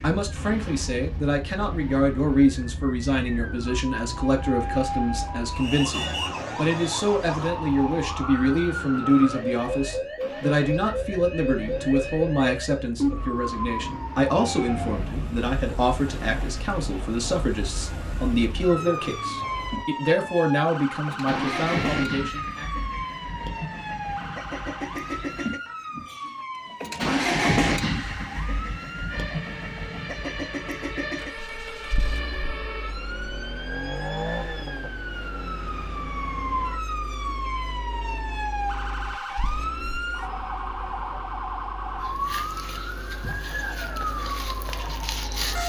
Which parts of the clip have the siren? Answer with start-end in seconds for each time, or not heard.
0.0-45.6.